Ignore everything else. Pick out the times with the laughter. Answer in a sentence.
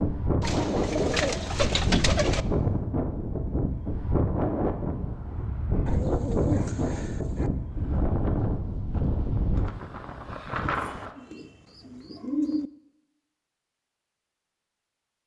You can't hear the laughter here.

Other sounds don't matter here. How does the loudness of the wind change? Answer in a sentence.
The volume of the wind stays about the same.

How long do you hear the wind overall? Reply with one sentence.
You can hear the wind for 11 seconds altogether.